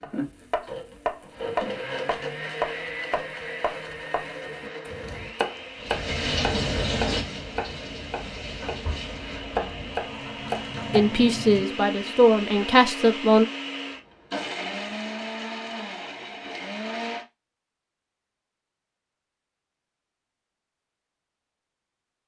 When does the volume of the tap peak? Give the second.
7 s.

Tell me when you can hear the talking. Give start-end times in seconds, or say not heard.
10.9-13.4.